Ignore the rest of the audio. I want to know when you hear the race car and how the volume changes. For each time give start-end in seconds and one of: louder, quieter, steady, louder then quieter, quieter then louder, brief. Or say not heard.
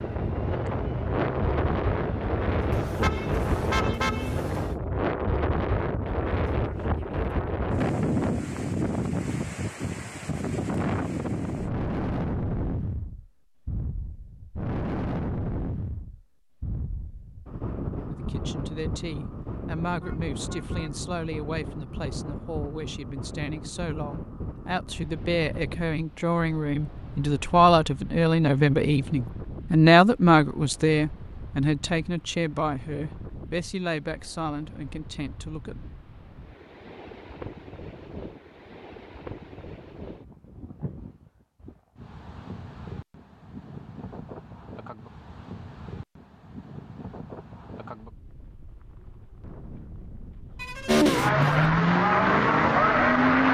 0.0-4.8 steady
50.9-53.5 brief.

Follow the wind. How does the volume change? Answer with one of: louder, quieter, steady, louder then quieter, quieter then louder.
quieter.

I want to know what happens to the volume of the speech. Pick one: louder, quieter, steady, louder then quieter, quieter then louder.
louder then quieter.